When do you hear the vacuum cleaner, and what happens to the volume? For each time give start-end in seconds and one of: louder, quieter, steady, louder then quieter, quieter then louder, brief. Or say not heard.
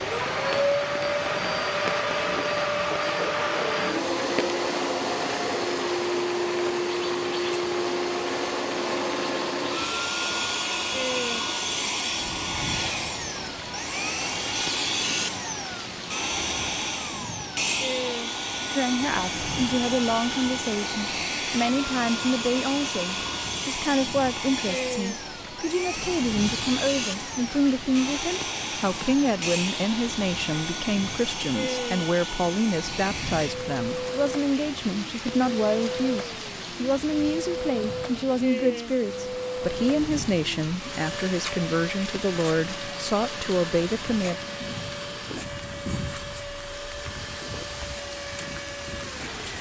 0.0-49.4 quieter.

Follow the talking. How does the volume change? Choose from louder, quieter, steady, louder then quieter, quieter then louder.
steady.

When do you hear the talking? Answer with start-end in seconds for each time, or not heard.
18.8-44.4.